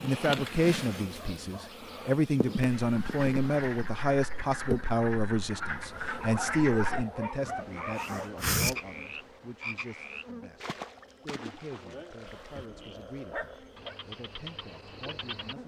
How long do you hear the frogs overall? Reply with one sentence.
The frogs can be heard for 13 seconds in total.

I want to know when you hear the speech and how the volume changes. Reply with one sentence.
You can hear the speech from 0.0 to 15.6 s, getting quieter.